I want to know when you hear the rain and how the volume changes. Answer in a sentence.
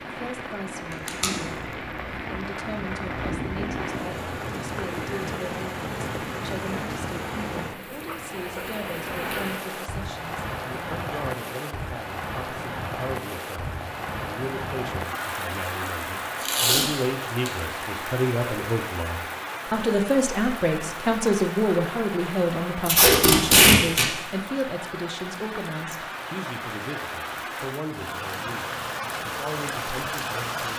The rain can be heard from 0.0 to 30.7 s, at a steady volume.